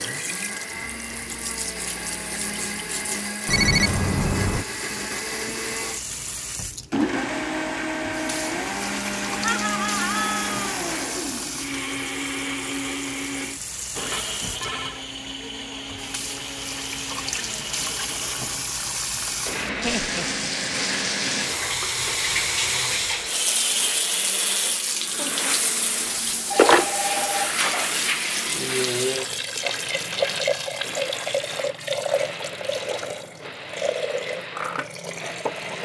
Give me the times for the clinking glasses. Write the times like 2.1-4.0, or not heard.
not heard.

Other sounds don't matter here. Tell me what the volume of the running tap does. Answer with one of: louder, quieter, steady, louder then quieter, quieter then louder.
louder.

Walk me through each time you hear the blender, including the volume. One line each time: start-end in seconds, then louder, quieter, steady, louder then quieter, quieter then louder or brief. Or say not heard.
0.0-35.7 quieter.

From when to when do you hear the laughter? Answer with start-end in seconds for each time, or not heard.
9.4-10.8, 19.8-20.5.